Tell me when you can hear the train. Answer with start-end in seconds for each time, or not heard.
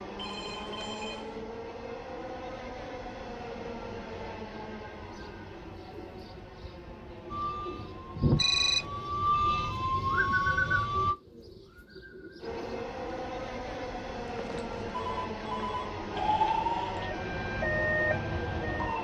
0.0-9.2, 12.4-18.9.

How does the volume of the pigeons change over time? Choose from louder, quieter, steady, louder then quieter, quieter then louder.
louder then quieter.